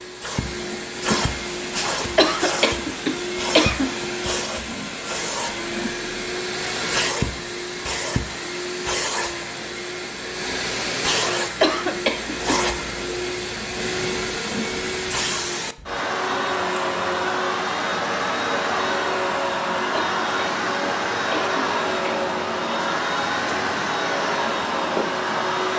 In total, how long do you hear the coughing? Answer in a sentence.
The coughing can be heard for 5 seconds in total.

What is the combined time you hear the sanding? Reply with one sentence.
You can't hear the sanding here.